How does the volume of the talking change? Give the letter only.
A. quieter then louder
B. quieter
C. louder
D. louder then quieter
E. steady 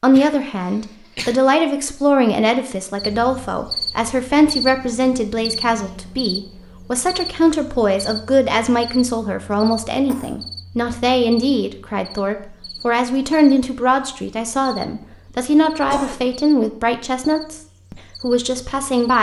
E.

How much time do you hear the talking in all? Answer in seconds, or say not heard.
19 s.